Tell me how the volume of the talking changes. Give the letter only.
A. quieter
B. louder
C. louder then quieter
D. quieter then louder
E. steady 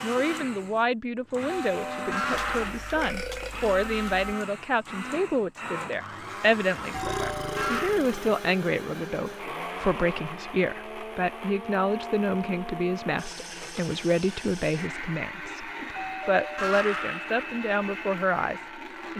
E.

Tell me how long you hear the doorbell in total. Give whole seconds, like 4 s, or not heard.
4 s.